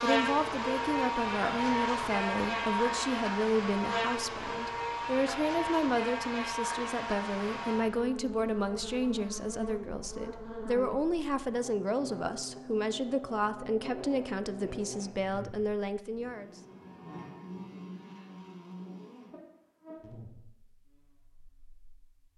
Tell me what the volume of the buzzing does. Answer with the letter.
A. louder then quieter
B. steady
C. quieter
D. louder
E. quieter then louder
C.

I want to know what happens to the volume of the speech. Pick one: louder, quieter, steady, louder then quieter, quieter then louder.
steady.